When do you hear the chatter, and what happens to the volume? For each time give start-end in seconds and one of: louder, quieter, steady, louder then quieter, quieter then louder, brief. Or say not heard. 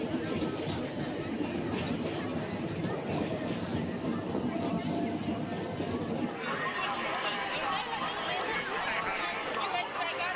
0.0-10.3 louder.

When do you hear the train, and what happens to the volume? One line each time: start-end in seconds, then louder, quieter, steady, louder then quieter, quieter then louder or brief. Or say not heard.
0.0-10.3 quieter.